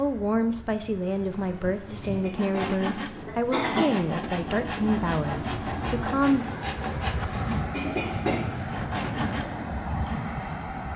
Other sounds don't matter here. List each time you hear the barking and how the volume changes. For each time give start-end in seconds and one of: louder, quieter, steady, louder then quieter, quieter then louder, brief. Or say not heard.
not heard.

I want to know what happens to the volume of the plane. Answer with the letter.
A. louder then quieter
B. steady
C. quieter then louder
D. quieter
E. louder
E.